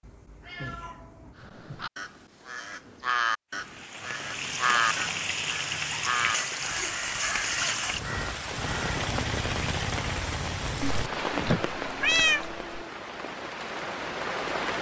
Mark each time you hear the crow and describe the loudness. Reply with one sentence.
The crow can be heard from 1.4 to 8.9 s, getting louder then quieter.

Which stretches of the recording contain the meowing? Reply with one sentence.
The meowing can be heard from 0.0 to 1.4 s, from 6.3 to 7.0 s and from 10.8 to 12.7 s.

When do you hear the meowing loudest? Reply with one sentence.
The volume of the meowing peaks at 12 seconds.